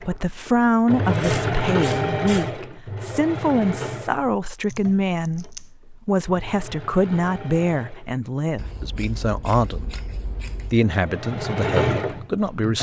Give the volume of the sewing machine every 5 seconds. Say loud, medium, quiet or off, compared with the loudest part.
loud, quiet, loud.